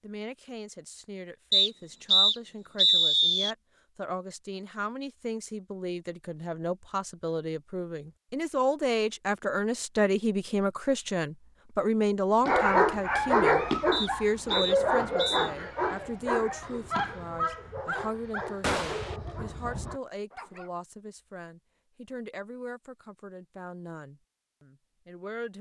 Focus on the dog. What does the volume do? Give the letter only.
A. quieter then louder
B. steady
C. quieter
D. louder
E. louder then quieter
C.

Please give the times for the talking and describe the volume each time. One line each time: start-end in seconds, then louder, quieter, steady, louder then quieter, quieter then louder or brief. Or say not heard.
0.0-25.5 louder then quieter.